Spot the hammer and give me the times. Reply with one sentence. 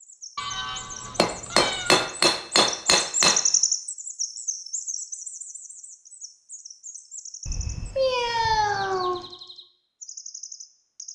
You can hear the hammer from 1.1 to 3.5 s.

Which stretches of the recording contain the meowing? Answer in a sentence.
The meowing can be heard from 0.3 to 2.0 s and from 7.5 to 9.2 s.